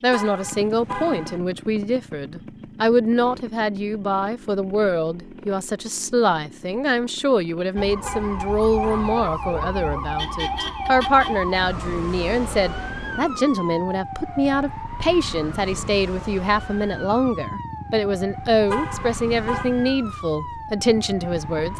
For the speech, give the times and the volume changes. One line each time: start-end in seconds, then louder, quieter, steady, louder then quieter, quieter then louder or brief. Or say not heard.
0.0-21.7 steady.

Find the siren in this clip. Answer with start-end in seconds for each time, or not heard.
7.8-21.7.